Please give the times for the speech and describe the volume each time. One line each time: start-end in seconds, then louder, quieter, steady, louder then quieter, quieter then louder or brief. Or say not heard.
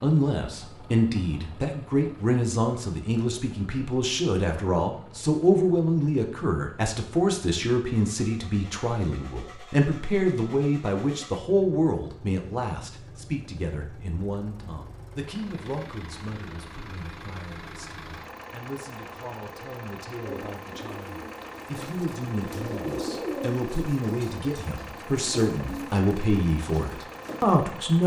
0.0-28.0 quieter then louder.